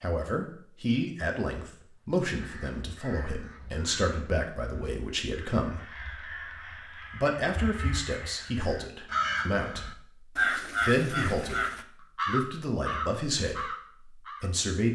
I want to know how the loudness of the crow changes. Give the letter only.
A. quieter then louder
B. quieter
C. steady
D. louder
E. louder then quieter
D.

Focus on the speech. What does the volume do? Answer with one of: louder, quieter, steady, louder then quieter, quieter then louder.
steady.